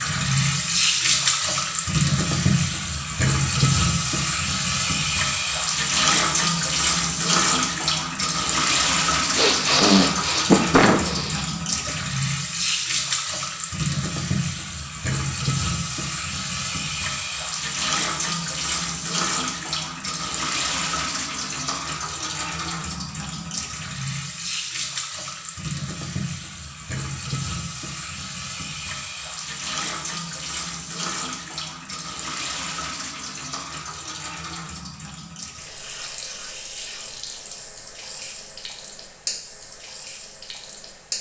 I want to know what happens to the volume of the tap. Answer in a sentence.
The loudness of the tap goes down.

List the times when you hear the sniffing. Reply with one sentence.
You can hear the sniffing from 9.3 to 11.9 s.